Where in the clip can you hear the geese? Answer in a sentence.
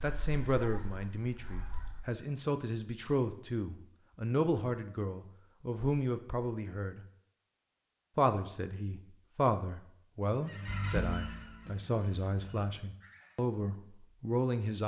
You can hear the geese from 0.0 to 2.0 s and from 10.4 to 13.4 s.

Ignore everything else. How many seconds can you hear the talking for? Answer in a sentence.
The talking can be heard for 14 seconds in total.